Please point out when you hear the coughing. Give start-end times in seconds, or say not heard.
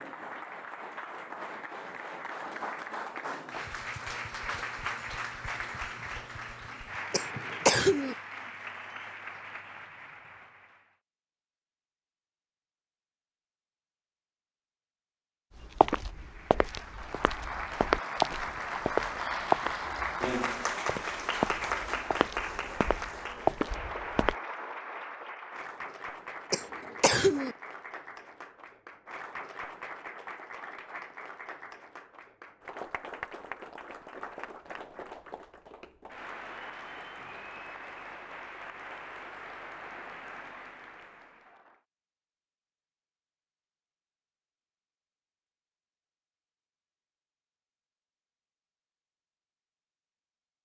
7.1-8.2, 26.5-27.6.